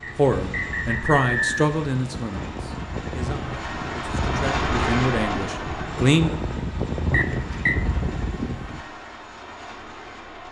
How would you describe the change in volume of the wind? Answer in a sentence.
The volume of the wind goes up.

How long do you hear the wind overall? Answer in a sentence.
The wind can be heard for 9 seconds in total.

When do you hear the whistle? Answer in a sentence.
You can hear the whistle from 0.0 to 1.6 s and from 7.1 to 7.8 s.